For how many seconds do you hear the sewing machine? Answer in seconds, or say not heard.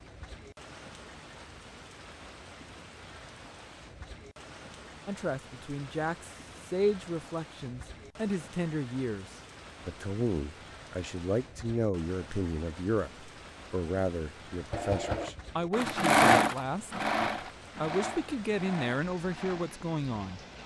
6 s.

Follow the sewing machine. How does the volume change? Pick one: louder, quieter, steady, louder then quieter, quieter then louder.
louder then quieter.